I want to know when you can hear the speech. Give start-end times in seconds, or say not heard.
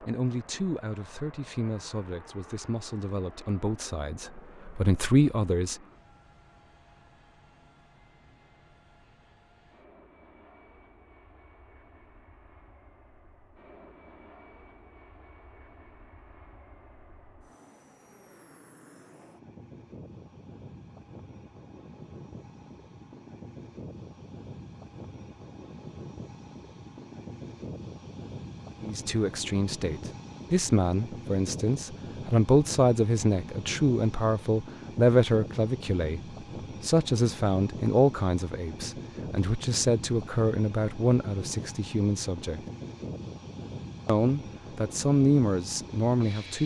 0.0-5.8, 28.8-36.2, 36.8-42.6, 44.0-46.6.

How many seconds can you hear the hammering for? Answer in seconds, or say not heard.
not heard.